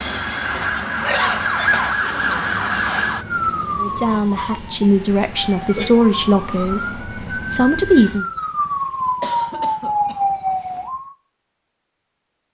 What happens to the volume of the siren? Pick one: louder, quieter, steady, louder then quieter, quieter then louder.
quieter then louder.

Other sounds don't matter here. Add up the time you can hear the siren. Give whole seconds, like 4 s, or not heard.
11 s.